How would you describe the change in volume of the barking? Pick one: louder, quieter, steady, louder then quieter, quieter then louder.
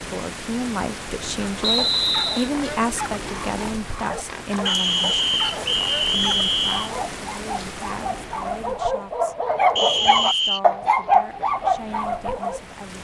louder.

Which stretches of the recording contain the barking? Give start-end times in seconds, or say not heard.
1.6-12.7.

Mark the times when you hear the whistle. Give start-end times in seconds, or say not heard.
1.6-2.5, 4.7-6.9, 9.8-10.6.